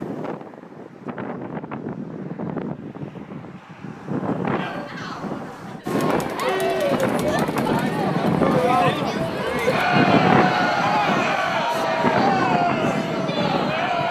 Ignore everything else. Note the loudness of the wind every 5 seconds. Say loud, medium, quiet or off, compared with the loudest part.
medium, loud, loud.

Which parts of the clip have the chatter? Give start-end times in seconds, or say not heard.
4.5-14.0.